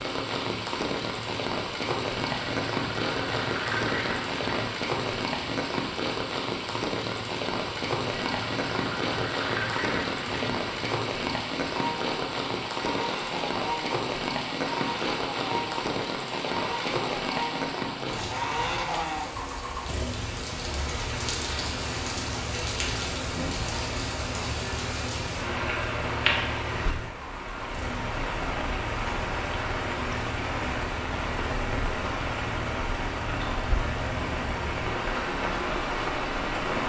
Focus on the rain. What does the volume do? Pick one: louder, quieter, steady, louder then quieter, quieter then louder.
steady.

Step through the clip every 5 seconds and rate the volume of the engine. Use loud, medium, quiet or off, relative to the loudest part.
loud, loud, loud, loud, medium, medium, medium, loud.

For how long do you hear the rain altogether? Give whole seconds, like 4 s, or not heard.
37 s.